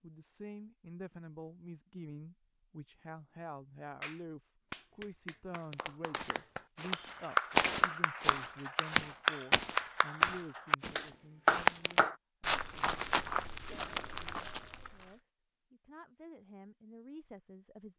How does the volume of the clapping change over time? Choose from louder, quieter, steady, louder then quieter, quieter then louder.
louder.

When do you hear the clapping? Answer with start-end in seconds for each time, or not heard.
4.0-12.2.